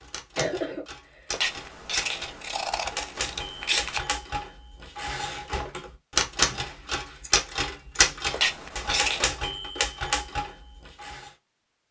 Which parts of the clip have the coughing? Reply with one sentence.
The coughing can be heard from 0.3 to 1.2 s and from 6.6 to 7.3 s.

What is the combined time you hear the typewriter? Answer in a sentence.
The typewriter can be heard for 11 seconds in total.